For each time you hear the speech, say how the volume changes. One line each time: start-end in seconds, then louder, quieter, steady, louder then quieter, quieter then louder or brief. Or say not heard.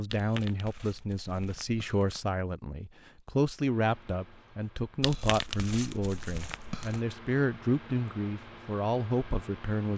0.0-9.9 steady.